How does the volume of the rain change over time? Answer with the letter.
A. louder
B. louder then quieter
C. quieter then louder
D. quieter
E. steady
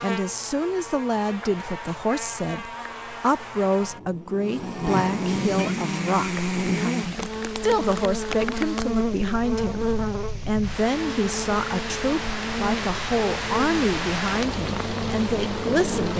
A.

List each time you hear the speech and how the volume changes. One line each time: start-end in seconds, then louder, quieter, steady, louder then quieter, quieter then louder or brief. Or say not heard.
0.0-16.1 steady.